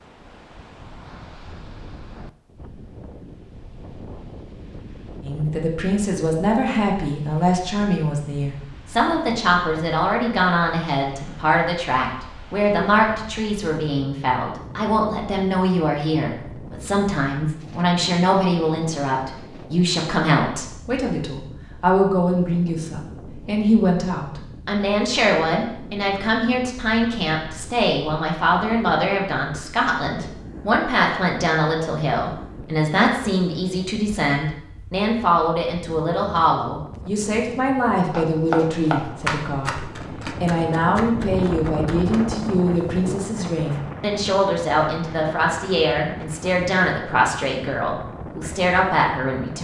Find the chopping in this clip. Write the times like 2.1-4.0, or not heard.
38.1-43.8.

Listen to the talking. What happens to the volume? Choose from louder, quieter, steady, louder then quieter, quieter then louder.
steady.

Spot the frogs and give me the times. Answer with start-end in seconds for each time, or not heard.
not heard.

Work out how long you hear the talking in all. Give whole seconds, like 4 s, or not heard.
44 s.